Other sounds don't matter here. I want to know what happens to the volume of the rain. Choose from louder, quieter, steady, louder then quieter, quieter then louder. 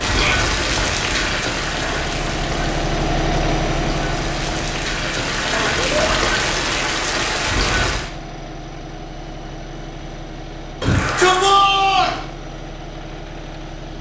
quieter then louder.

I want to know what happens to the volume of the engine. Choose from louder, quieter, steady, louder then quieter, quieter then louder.
quieter.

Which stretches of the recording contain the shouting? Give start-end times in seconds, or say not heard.
0.0-0.5, 5.8-6.2, 10.8-12.2.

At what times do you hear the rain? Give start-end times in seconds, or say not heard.
0.0-8.1.